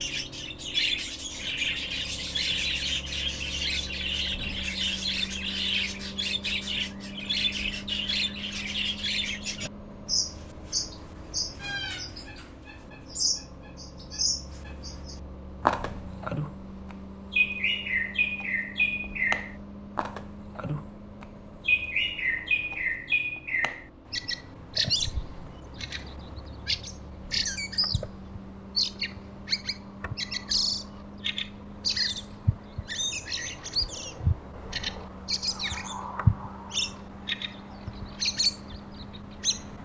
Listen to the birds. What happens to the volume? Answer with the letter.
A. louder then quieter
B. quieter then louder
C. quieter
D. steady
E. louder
D.